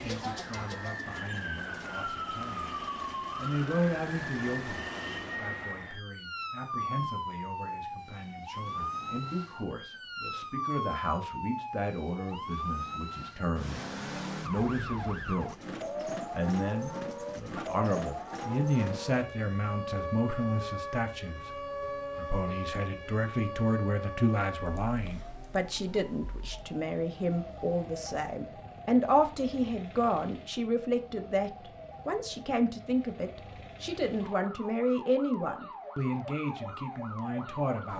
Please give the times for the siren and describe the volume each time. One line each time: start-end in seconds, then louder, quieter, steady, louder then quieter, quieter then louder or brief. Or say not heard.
0.0-37.9 quieter.